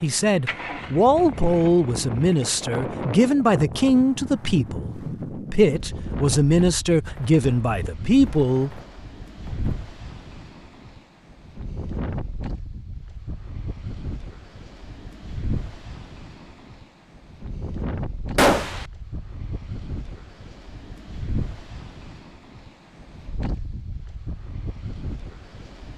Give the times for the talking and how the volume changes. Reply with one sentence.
You can hear the talking from 0.0 to 8.8 s, at a steady volume.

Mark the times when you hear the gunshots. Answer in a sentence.
The gunshots can be heard from 6.3 to 9.8 s and from 18.4 to 18.9 s.